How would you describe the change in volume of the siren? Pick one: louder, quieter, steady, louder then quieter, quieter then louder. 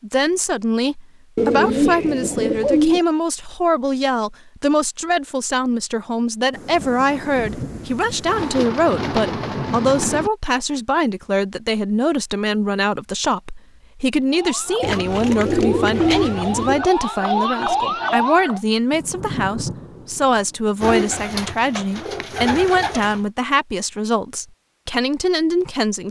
louder.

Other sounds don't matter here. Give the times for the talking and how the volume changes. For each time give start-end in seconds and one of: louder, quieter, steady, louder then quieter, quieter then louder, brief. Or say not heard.
0.0-26.0 steady.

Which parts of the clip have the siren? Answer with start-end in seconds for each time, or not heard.
14.3-18.6.